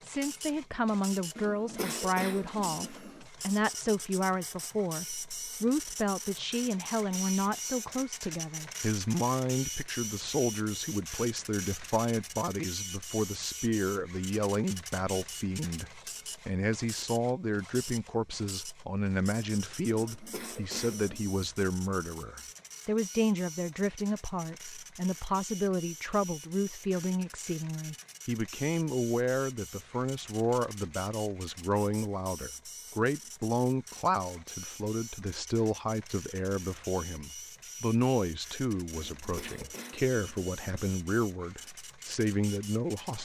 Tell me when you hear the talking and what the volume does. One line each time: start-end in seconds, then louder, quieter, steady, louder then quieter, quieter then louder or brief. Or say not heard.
0.0-43.2 steady.